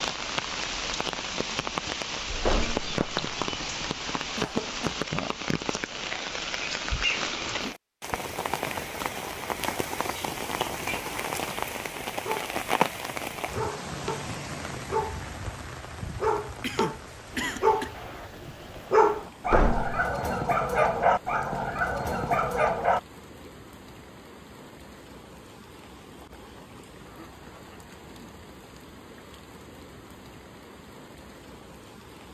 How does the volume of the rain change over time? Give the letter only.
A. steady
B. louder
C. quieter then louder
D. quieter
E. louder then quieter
D.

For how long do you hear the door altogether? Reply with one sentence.
The door can be heard for 2 seconds in total.